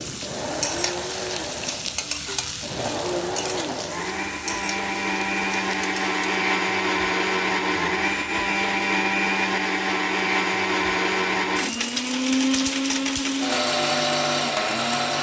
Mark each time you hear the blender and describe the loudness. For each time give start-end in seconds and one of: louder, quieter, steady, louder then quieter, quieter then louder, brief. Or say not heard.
0.0-15.1 louder.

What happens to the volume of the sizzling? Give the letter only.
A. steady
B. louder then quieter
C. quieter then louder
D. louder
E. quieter
E.